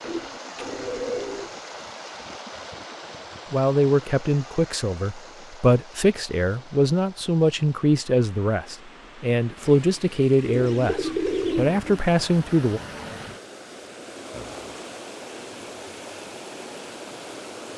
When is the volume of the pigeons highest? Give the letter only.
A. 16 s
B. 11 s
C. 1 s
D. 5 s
B.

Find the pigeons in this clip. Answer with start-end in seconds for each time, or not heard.
0.0-1.5, 10.4-12.0.